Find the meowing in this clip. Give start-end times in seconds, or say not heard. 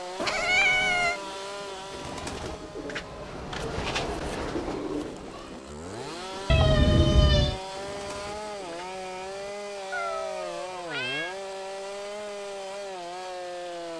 0.1-1.2, 6.5-7.6, 9.9-11.3.